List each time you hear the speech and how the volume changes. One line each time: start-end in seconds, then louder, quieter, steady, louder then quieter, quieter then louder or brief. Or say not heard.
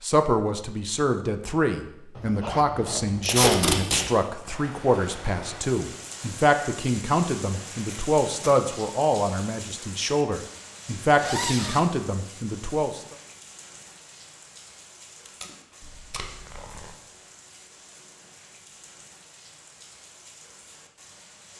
0.0-13.2 steady.